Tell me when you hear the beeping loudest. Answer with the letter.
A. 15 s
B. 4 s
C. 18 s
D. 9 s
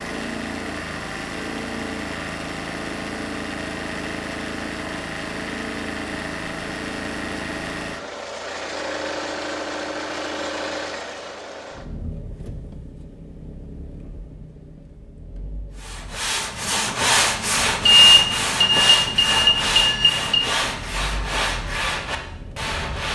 C.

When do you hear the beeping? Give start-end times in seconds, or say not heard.
17.9-20.4.